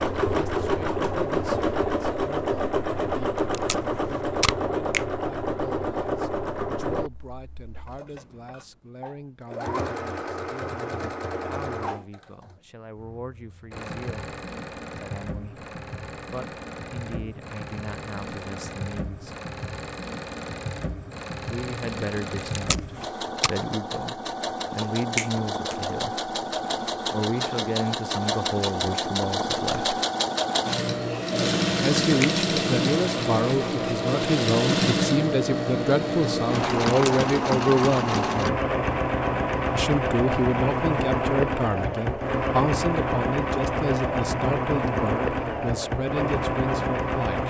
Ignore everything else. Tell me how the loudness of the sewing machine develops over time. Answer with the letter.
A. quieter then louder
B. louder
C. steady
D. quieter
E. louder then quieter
A.